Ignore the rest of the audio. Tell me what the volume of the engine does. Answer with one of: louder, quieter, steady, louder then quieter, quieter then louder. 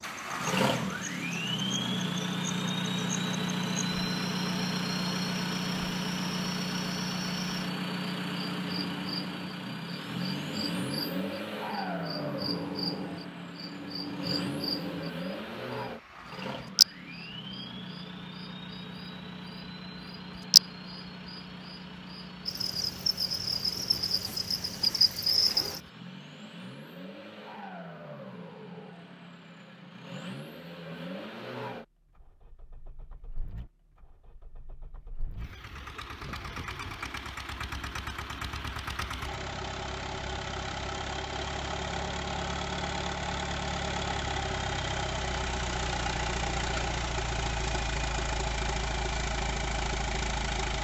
quieter then louder.